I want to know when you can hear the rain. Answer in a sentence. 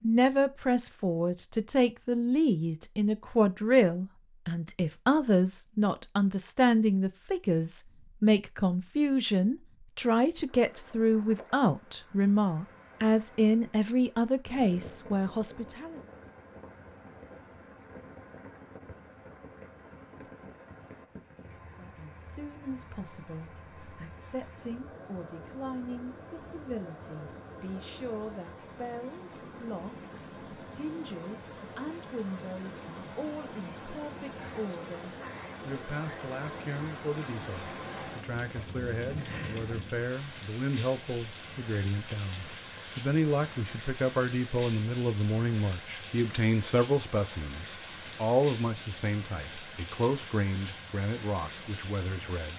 The rain can be heard from 10.3 to 52.5 s.